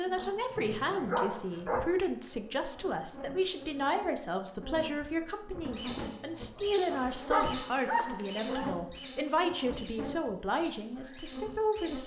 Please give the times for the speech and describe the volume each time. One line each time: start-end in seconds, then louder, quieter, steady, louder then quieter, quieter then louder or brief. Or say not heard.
0.0-12.0 steady.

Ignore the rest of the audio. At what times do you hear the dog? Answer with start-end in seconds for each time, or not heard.
0.1-1.9, 7.0-8.7.